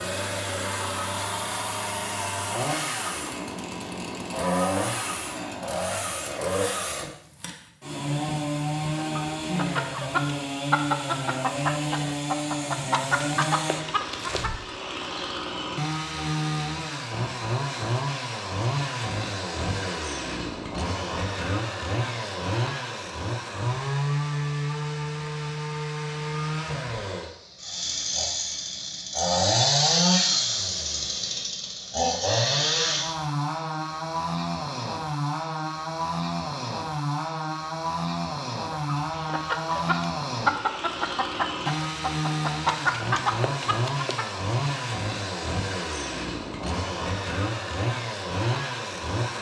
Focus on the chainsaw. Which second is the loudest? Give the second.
30 s.